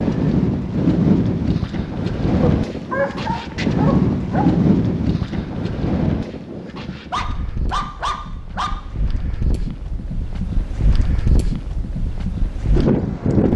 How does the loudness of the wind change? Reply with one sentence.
The volume of the wind goes down, then up.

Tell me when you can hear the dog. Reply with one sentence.
The dog can be heard from 2.4 to 4.5 s and from 7.1 to 8.7 s.